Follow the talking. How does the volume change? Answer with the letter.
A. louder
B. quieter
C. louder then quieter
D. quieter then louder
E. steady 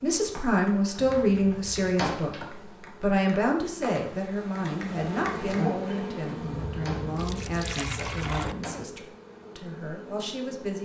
B.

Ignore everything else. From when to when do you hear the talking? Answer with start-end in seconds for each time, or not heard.
0.0-10.8.